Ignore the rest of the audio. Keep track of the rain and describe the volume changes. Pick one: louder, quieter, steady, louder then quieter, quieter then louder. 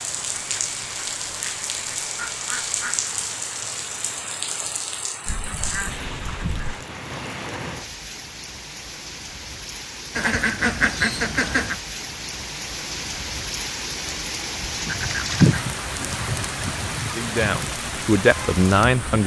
quieter then louder.